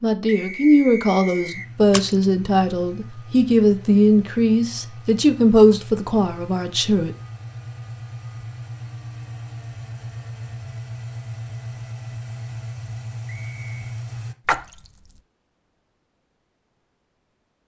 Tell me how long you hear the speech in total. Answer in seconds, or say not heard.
7 s.